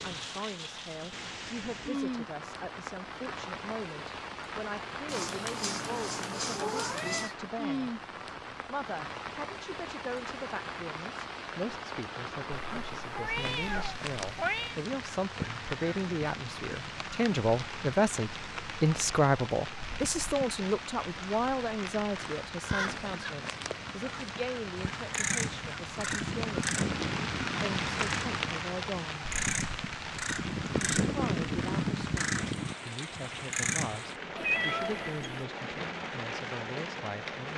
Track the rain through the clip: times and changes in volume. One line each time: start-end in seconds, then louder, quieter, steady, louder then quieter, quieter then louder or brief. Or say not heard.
0.0-37.5 steady.